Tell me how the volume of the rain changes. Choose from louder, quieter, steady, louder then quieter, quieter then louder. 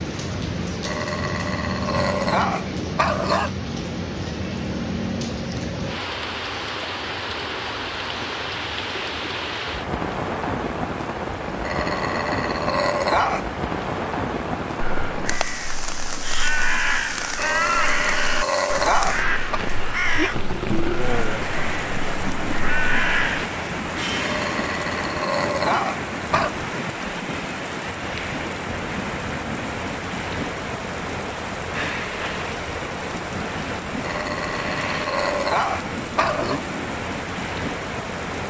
steady.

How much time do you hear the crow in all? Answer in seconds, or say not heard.
9 s.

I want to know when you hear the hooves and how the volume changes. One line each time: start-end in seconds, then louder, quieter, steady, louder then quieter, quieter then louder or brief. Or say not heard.
not heard.